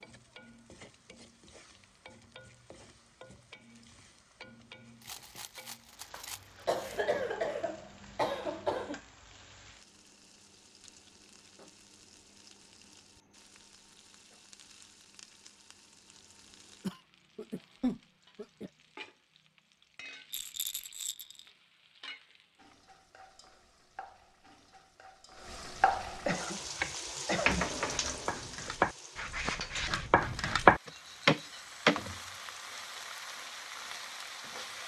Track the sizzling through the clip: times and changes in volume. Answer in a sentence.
The sizzling can be heard from 0.0 to 34.8 s, getting louder.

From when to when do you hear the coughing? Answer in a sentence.
You can hear the coughing from 6.7 to 9.0 s, from 16.9 to 18.7 s and from 26.2 to 27.6 s.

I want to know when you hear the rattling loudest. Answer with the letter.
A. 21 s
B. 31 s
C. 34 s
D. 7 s
A.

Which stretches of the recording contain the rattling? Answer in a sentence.
The rattling can be heard from 5.0 to 7.0 s and from 20.3 to 21.5 s.